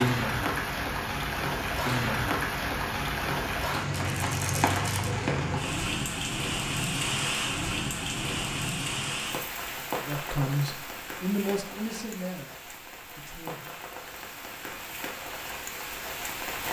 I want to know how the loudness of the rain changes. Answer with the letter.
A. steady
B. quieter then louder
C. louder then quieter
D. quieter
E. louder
D.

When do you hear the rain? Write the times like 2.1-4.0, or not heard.
0.0-16.6.